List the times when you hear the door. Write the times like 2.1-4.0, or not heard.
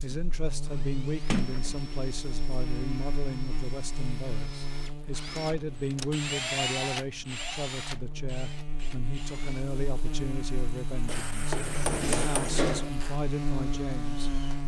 1.3-1.8, 5.3-6.2, 11.5-12.9.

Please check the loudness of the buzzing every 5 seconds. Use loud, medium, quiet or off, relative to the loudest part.
loud, medium, loud.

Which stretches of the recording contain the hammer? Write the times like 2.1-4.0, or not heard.
11.1-12.6.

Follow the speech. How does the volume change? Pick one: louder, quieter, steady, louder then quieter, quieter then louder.
steady.